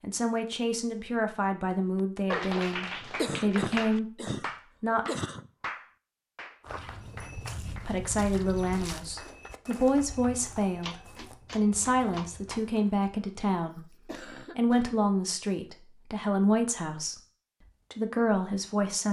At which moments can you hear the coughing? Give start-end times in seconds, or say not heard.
3.1-5.5, 13.7-15.0.